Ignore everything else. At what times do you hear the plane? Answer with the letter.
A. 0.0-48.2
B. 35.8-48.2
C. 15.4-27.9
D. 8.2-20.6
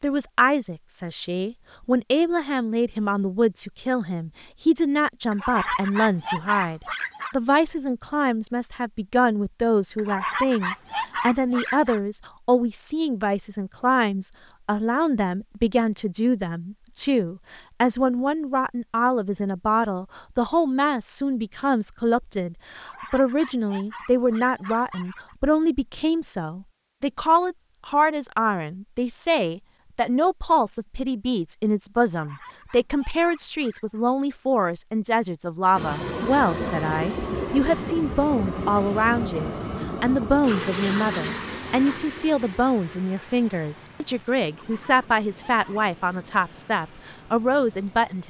B.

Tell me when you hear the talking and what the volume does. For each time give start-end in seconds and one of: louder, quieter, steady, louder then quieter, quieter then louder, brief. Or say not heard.
0.0-48.2 steady.